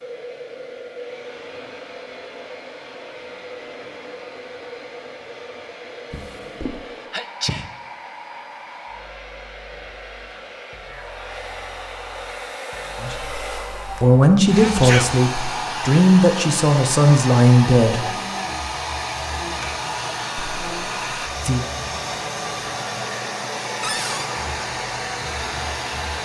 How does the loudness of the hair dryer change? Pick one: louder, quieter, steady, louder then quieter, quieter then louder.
louder.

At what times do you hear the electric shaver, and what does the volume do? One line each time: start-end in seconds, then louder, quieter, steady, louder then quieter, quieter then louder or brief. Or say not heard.
not heard.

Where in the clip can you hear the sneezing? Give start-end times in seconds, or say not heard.
7.1-7.7, 14.4-15.1.